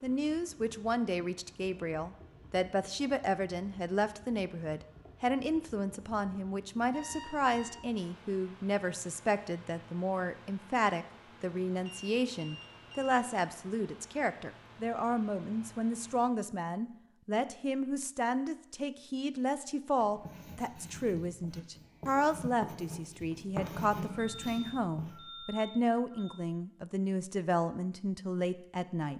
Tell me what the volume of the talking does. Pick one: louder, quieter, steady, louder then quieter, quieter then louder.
steady.